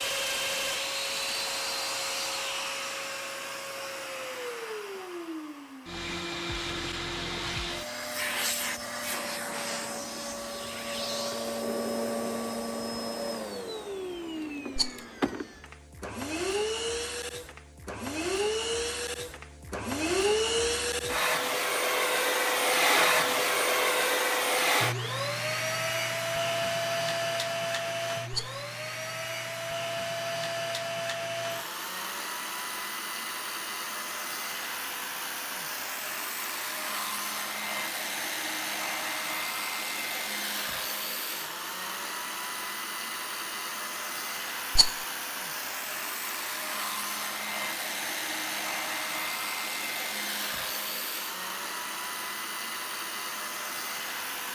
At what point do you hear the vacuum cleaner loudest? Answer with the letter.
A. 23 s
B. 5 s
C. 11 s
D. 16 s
A.